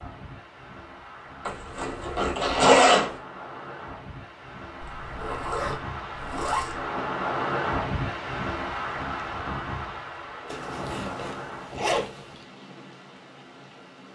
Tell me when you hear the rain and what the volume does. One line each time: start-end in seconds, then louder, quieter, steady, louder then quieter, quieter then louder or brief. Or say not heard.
0.0-14.1 louder then quieter.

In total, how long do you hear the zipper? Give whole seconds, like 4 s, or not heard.
6 s.